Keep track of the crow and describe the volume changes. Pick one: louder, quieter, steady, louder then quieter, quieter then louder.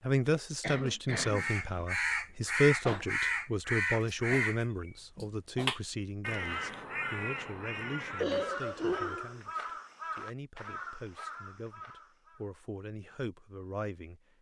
quieter.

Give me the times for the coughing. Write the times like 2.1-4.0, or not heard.
0.6-1.9, 8.2-9.3.